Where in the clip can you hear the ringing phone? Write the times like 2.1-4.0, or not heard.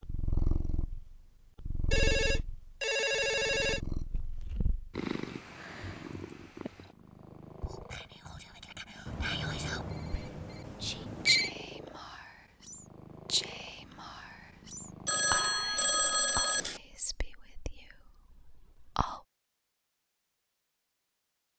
1.9-3.8, 9.1-11.5, 15.1-16.8.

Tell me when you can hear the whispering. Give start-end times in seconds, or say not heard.
7.6-19.2.